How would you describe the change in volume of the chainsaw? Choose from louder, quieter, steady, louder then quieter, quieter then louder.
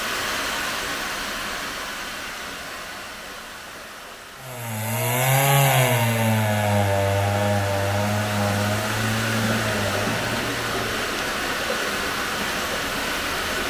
quieter.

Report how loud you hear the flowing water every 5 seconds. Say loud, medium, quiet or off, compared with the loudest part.
medium, loud, loud.